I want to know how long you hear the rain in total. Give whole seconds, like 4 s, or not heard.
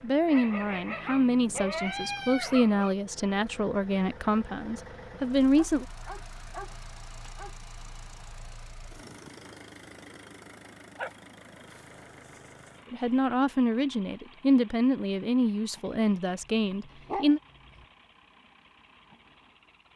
not heard.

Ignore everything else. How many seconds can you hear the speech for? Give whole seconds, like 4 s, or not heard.
10 s.